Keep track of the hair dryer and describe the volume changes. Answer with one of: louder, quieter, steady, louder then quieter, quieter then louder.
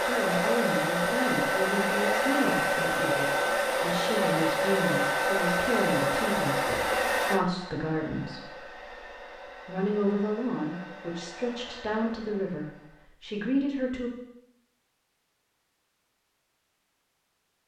quieter.